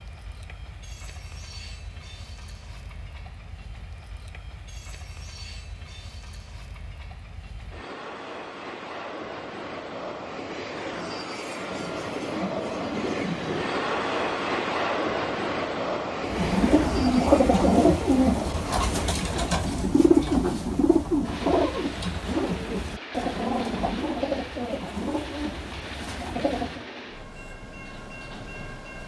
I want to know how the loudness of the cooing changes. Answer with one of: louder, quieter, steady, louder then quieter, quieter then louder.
quieter.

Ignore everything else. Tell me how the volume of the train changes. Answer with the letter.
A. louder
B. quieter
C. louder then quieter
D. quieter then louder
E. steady
C.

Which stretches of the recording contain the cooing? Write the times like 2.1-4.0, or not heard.
16.2-26.9.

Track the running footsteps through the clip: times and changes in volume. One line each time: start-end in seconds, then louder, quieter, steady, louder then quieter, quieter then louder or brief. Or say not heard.
not heard.